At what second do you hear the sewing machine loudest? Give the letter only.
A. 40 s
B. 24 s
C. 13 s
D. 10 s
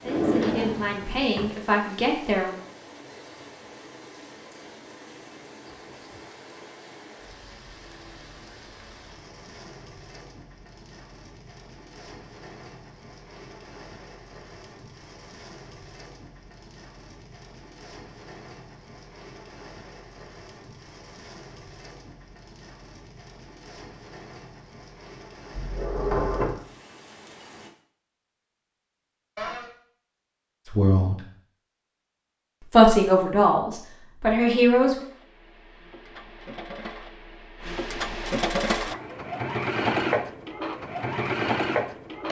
A.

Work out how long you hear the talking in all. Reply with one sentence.
The talking can be heard for 5 seconds in total.